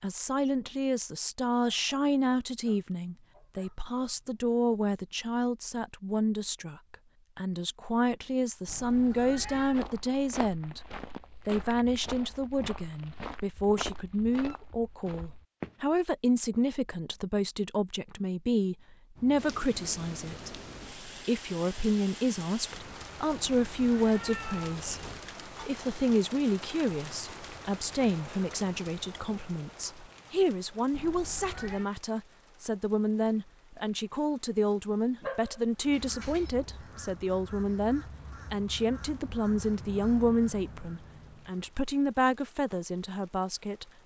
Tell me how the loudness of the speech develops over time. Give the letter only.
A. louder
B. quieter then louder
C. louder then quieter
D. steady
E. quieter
D.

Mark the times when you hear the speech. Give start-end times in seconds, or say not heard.
0.0-10.8, 11.4-43.9.